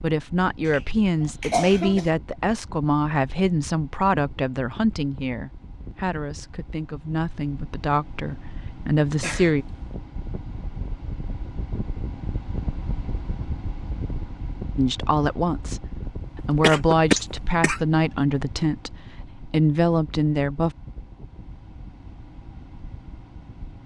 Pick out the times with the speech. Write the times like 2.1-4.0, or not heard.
0.0-9.7, 14.8-20.7.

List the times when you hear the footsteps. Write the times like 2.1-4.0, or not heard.
not heard.